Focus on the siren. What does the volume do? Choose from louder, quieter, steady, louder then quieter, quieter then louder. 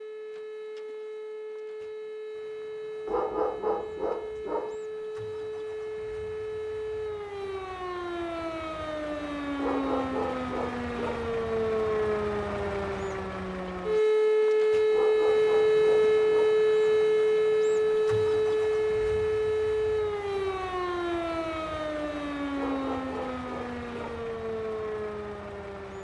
louder then quieter.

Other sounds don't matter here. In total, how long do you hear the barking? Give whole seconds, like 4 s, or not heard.
7 s.